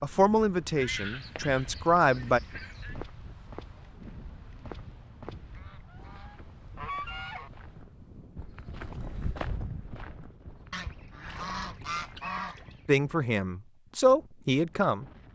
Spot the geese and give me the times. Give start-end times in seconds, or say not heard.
0.8-3.0, 5.5-7.5, 10.7-13.0.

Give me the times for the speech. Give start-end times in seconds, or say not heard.
0.0-2.4, 12.8-15.1.